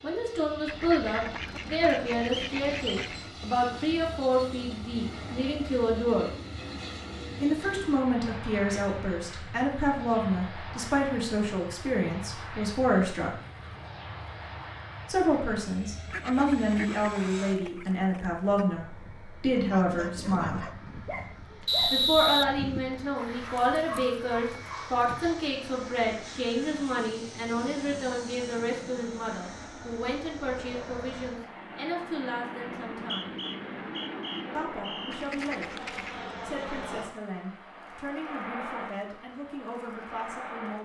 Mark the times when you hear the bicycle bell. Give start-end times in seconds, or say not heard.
not heard.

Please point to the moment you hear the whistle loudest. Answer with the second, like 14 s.
22 s.